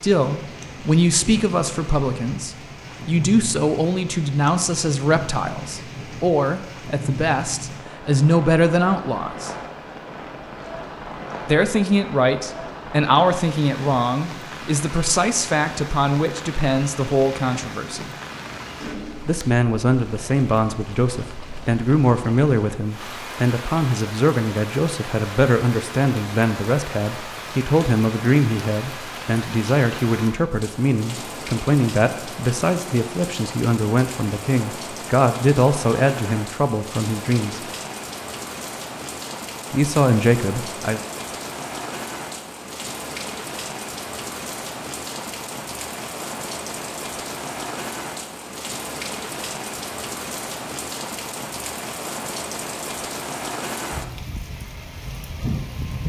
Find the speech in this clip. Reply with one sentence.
You can hear the speech from 0.0 to 9.5 s, from 11.4 to 18.1 s, from 19.2 to 37.6 s and from 39.7 to 41.0 s.